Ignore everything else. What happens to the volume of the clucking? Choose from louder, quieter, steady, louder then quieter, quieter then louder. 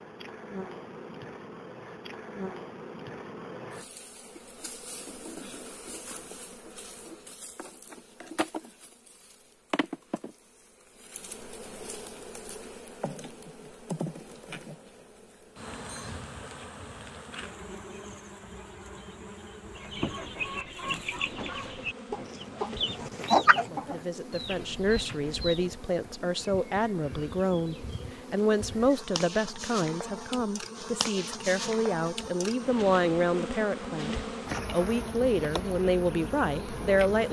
louder then quieter.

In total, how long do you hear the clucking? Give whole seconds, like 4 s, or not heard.
6 s.